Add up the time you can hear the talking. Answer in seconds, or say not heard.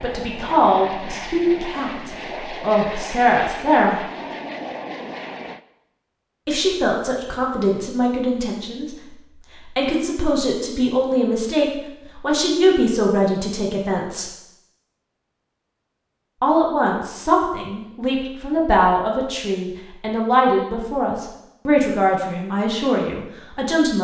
19 s.